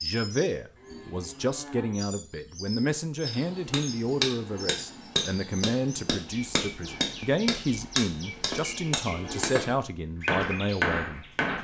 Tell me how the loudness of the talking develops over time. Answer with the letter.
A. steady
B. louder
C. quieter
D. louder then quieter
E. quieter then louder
A.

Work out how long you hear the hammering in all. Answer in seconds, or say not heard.
8 s.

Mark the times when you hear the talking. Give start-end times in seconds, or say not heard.
0.0-11.5.